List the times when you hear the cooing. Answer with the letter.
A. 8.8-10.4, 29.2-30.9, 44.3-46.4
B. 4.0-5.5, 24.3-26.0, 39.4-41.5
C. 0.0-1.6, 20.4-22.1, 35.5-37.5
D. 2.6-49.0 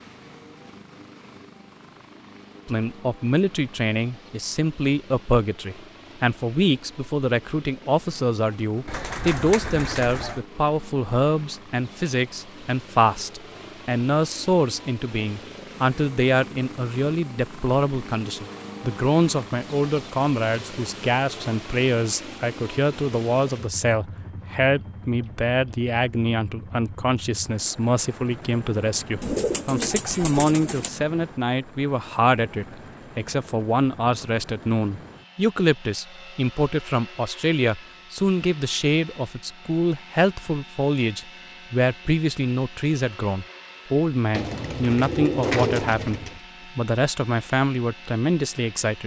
A.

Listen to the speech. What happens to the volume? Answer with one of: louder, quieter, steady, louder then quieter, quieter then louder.
steady.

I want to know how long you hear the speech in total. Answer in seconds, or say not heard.
46 s.